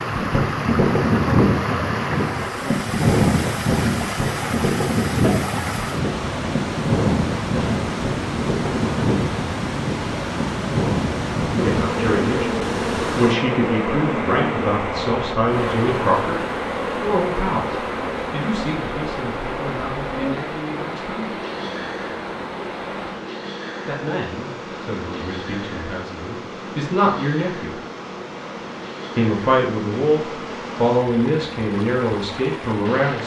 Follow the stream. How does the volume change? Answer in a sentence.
The loudness of the stream goes down.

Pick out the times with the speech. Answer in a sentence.
You can hear the speech from 11.6 to 16.4 s, from 17.0 to 21.2 s, from 23.9 to 27.8 s and from 29.1 to 33.2 s.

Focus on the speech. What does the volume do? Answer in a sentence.
The loudness of the speech goes down, then up.